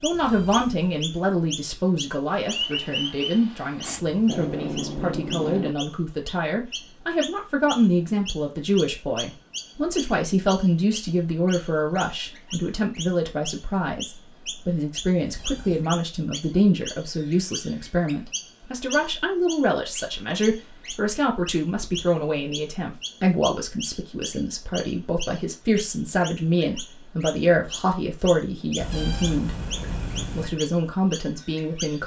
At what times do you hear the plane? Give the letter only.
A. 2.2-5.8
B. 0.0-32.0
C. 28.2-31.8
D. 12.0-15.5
A.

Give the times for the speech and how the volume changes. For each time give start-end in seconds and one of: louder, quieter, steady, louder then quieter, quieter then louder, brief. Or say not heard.
0.0-32.0 steady.